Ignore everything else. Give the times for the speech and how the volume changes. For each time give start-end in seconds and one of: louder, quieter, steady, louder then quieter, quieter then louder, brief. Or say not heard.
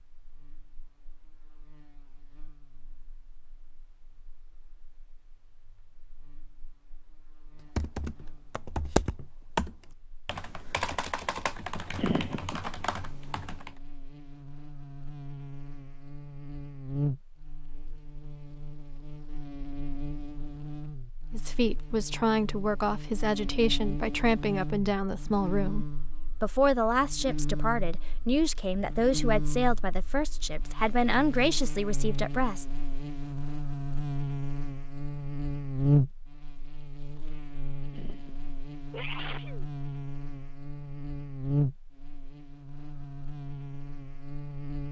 21.3-32.6 steady.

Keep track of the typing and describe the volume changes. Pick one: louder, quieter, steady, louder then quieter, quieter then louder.
quieter.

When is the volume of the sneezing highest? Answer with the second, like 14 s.
12 s.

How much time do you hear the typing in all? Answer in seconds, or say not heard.
6 s.